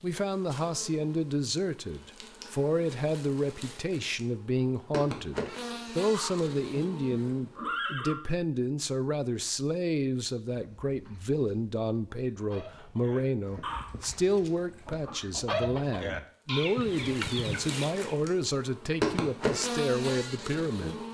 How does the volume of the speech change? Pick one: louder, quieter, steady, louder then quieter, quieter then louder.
steady.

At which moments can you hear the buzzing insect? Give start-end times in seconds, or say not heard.
0.0-7.4, 16.4-21.0.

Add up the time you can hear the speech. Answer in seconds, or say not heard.
21 s.